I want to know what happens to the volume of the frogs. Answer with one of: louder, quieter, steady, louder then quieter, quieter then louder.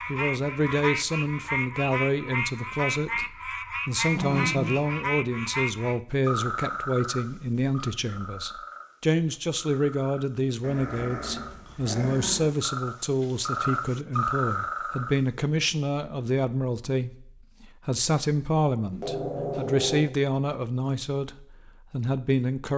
quieter then louder.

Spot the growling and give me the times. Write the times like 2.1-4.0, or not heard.
4.0-4.8, 10.6-12.5, 18.9-20.1.